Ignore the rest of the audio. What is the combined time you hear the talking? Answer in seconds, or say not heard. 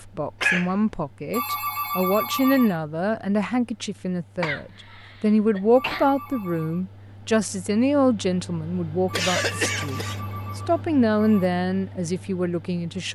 13 s.